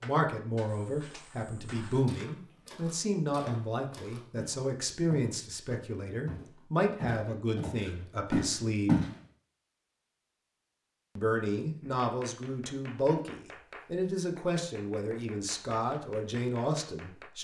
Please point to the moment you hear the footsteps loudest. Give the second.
9 s.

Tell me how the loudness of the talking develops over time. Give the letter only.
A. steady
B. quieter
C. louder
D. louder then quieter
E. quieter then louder
A.